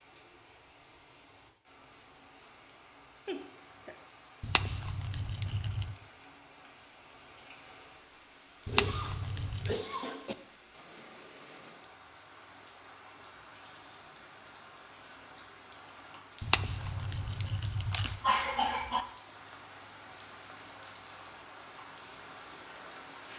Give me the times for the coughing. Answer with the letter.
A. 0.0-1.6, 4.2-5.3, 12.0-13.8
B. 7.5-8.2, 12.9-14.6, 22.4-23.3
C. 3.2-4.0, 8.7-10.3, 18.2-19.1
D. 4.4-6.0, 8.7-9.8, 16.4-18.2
C.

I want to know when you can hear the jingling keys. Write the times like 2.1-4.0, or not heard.
4.4-6.0, 8.7-9.8, 16.4-18.2.